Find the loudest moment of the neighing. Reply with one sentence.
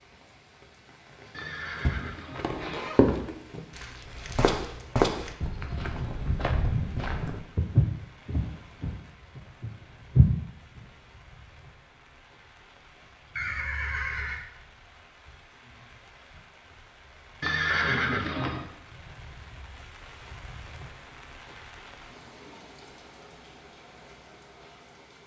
The volume of the neighing peaks at 18 seconds.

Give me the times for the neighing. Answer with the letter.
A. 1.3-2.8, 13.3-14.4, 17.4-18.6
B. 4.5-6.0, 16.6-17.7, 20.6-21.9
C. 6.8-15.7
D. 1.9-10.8
A.